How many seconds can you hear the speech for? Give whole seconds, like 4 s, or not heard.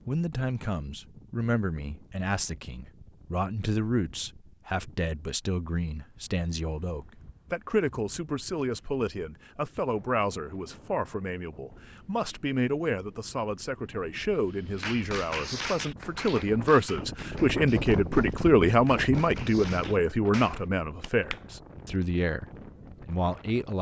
24 s.